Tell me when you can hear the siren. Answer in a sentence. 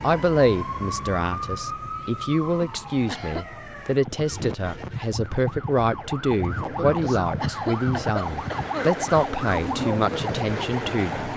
The siren can be heard from 0.0 to 11.3 s.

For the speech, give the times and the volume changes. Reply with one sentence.
The speech can be heard from 0.0 to 11.3 s, at a steady volume.